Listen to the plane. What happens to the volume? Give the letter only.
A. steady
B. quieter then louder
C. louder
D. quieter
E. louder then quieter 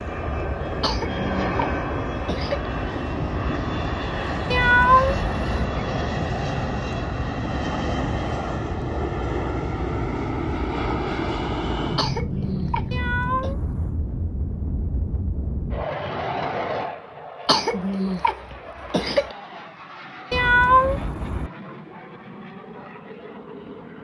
D.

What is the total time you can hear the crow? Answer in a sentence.
You can't hear the crow here.